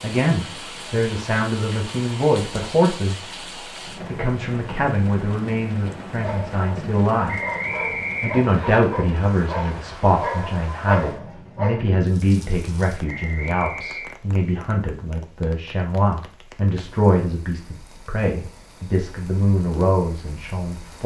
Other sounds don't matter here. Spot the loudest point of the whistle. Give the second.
8 s.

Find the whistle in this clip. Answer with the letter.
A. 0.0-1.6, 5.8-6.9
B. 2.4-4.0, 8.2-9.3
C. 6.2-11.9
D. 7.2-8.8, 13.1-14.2
D.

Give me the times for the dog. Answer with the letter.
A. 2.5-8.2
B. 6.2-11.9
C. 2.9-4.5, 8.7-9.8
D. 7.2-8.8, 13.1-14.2
B.